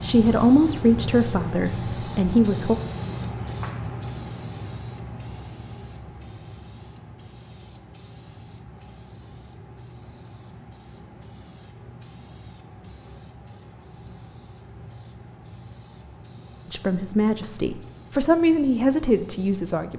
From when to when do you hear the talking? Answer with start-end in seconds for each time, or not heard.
0.0-2.8, 16.7-19.9.